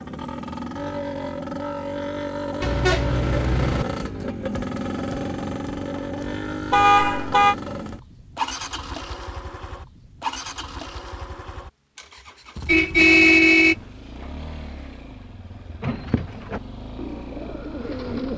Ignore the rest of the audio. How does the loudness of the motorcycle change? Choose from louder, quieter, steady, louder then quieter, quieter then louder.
quieter.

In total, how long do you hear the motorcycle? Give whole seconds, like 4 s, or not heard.
18 s.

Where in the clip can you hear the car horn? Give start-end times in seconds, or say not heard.
2.6-3.9, 6.7-7.5, 12.7-13.8.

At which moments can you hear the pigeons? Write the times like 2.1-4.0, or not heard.
15.8-18.3.